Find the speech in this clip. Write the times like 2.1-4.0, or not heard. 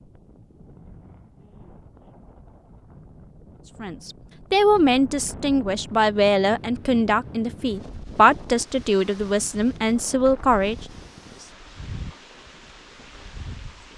3.8-10.8.